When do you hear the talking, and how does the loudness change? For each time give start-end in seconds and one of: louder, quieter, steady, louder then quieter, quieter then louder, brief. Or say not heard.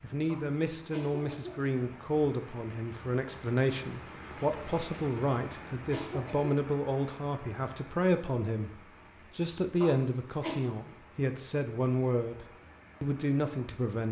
0.0-14.0 steady.